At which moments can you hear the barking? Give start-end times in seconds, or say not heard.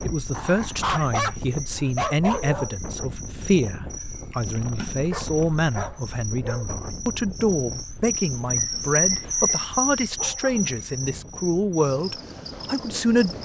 0.3-2.8, 5.1-6.7, 9.7-11.3.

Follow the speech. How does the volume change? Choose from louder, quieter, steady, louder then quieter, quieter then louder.
steady.